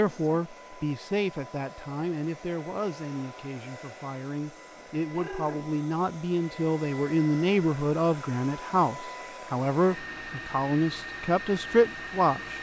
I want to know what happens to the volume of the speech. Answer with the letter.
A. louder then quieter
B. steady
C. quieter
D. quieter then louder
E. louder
E.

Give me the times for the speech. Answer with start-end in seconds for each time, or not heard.
0.0-12.5.